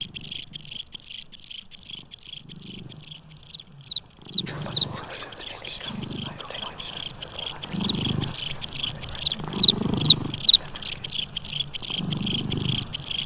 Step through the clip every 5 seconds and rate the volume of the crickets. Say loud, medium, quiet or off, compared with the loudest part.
medium, loud, loud.